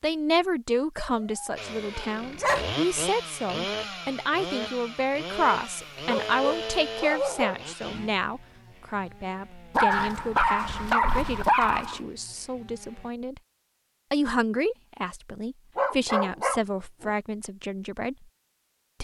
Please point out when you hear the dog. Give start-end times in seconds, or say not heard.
0.9-2.8, 6.0-7.7, 9.7-12.0, 15.8-17.1.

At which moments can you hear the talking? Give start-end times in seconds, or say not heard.
0.0-13.4, 14.1-18.2.